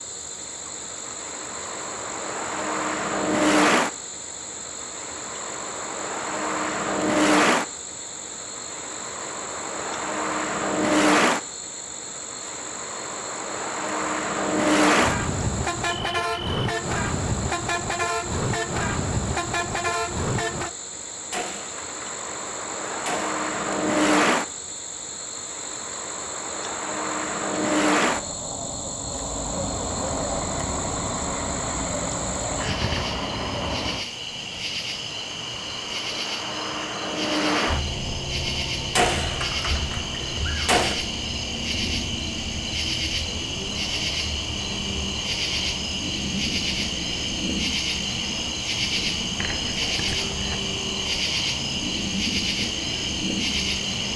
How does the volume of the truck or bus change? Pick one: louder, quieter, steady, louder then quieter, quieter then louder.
quieter.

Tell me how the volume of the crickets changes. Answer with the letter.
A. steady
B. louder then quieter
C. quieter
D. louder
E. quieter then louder
D.